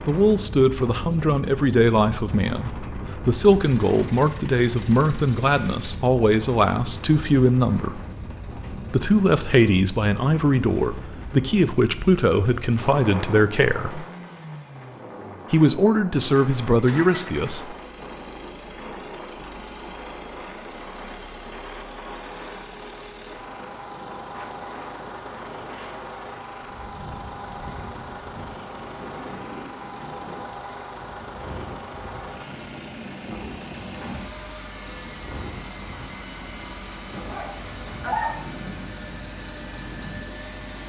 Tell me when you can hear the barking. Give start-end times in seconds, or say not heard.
37.2-38.5.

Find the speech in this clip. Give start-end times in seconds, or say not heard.
0.1-8.0, 8.9-14.1, 15.5-17.8.